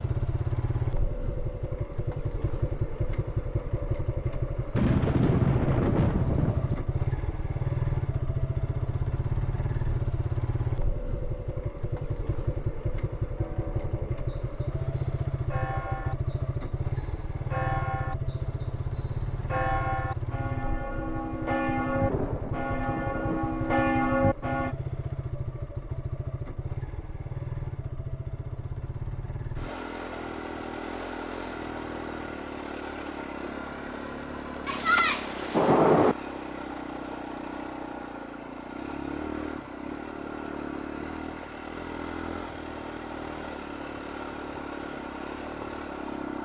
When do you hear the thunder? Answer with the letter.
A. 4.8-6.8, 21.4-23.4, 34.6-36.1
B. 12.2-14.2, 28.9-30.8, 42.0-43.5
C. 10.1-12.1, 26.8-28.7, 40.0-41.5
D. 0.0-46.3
A.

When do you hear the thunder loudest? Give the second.
36 s.